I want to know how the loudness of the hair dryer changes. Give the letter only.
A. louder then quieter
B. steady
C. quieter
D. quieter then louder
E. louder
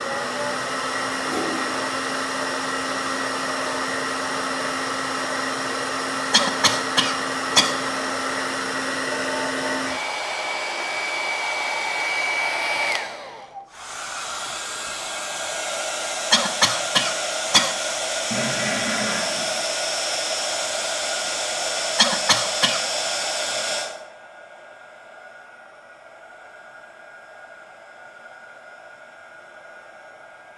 C.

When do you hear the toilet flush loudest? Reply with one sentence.
The loudest moment of the toilet flush is at 19 seconds.